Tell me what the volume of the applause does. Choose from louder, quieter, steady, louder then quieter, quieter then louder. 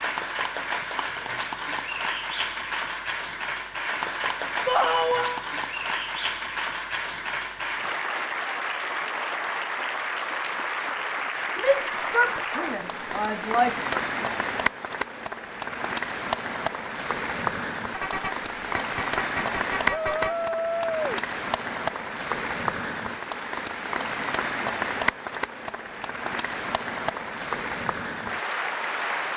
steady.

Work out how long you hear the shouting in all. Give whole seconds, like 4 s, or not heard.
4 s.